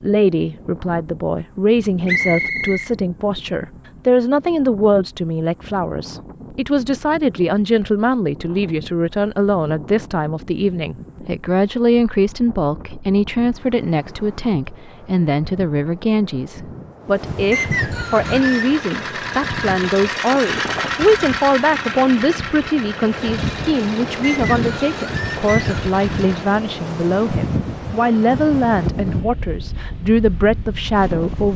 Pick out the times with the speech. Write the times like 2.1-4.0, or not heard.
0.0-31.5.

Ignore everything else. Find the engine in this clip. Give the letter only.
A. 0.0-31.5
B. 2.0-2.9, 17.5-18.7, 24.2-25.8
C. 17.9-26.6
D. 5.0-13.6
C.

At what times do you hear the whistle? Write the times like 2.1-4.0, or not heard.
2.0-2.9, 17.5-18.7, 24.2-25.8.